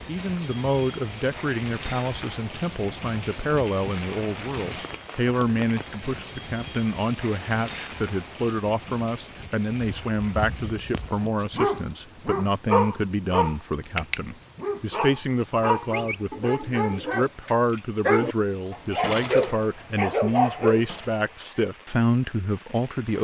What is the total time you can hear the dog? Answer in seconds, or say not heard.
11 s.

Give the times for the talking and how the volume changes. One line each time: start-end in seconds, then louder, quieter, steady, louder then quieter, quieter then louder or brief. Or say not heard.
0.1-23.1 steady.